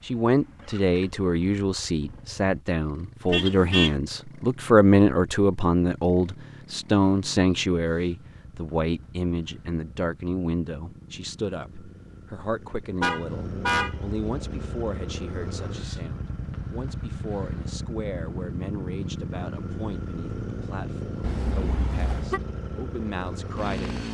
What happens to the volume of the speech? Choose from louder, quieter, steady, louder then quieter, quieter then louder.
quieter.